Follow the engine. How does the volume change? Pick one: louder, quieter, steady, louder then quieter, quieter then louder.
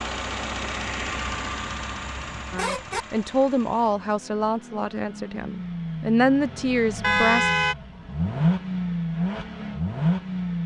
quieter then louder.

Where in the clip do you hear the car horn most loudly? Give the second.
7 s.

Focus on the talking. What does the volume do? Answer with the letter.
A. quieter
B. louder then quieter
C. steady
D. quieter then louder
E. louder
D.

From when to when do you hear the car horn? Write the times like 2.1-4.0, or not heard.
1.2-3.0, 7.0-7.8.